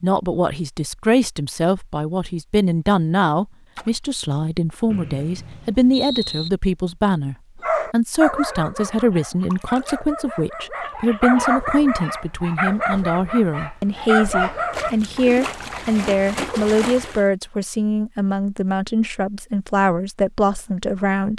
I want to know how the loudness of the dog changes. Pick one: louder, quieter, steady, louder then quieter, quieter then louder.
quieter then louder.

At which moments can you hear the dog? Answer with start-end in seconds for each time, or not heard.
7.6-14.9.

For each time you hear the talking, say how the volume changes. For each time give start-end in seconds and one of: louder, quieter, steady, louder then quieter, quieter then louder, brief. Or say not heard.
0.0-21.3 steady.